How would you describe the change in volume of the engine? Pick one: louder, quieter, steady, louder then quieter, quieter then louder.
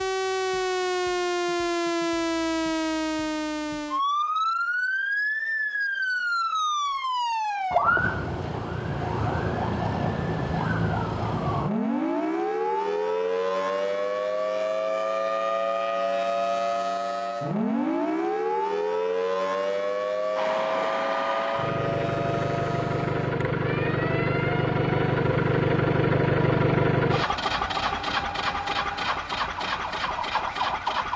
louder then quieter.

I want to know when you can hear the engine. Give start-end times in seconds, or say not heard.
20.4-31.1.